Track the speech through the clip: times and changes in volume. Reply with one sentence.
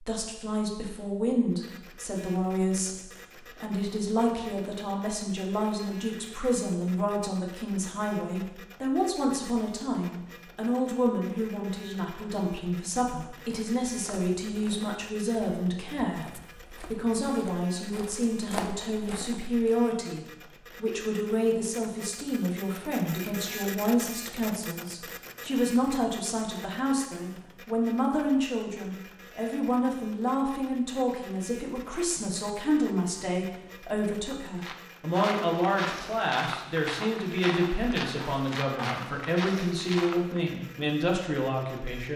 You can hear the speech from 0.0 to 42.1 s, at a steady volume.